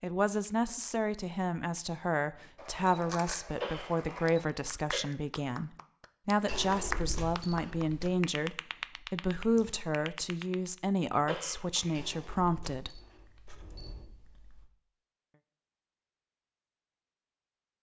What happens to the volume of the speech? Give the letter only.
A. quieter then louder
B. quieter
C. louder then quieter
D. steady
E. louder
D.